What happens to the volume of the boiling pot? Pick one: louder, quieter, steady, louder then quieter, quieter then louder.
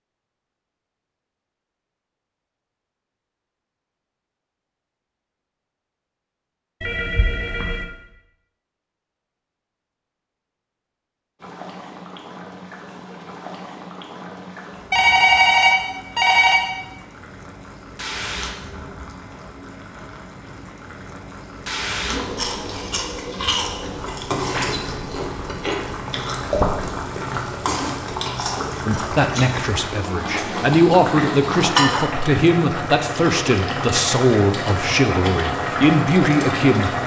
louder.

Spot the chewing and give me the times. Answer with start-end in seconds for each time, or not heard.
22.4-29.6.